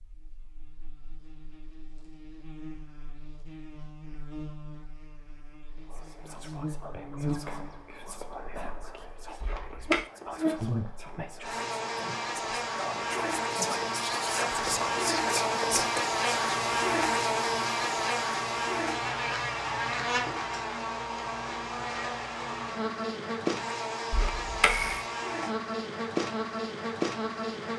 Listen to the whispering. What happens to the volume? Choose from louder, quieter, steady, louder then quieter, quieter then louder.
louder.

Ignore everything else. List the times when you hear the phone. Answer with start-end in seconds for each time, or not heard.
9.4-10.1, 24.1-25.1.